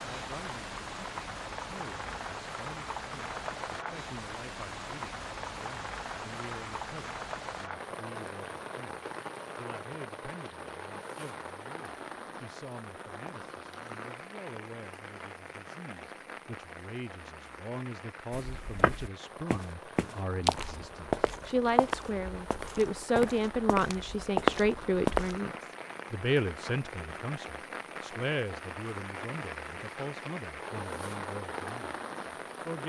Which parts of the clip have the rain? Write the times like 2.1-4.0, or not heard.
0.0-32.8.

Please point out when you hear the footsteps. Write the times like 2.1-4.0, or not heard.
18.3-25.4.